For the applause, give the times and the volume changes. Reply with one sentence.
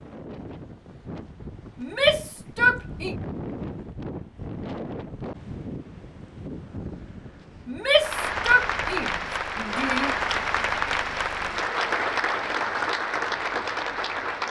The applause can be heard from 8.0 to 14.4 s, at a steady volume.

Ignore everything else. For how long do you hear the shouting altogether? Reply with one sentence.
The shouting can be heard for 4 seconds in total.